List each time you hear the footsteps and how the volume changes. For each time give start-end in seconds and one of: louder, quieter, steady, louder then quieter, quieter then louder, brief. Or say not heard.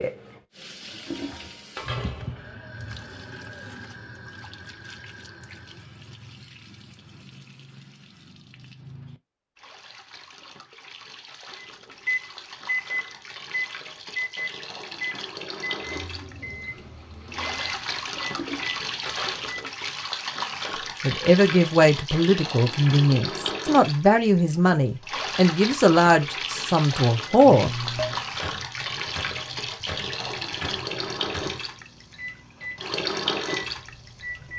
not heard.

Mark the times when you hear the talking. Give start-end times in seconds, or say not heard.
21.0-27.8.